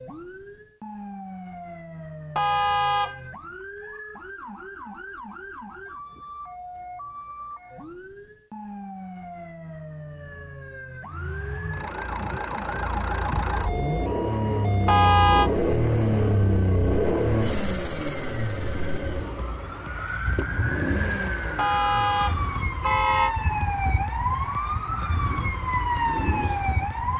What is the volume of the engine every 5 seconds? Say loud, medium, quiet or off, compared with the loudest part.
off, off, loud, loud, medium, medium.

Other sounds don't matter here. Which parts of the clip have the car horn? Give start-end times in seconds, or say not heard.
2.4-3.2, 14.8-15.5, 21.6-23.4.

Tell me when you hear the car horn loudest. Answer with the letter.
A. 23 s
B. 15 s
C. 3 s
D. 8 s
B.